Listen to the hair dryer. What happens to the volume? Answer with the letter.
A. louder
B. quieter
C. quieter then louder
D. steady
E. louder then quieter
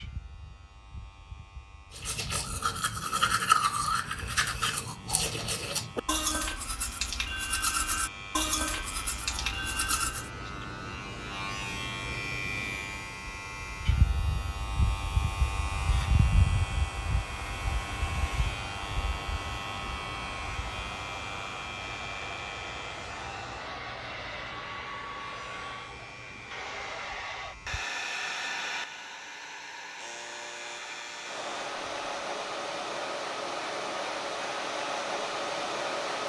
A.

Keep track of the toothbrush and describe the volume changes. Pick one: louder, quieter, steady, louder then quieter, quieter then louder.
quieter.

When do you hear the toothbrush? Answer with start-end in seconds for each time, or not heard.
1.9-10.3.